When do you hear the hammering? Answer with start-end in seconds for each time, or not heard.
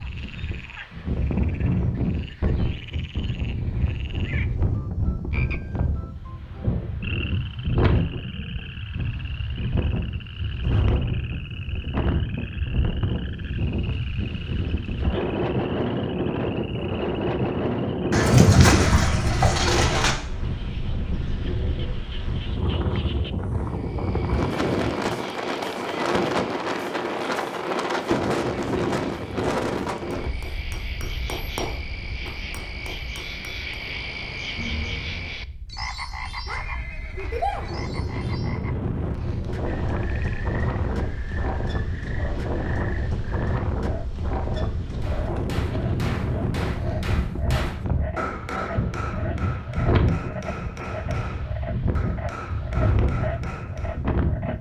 30.2-33.7, 45.0-54.0.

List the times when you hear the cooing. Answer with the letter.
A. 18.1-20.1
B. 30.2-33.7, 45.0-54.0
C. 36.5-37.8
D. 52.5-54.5
A.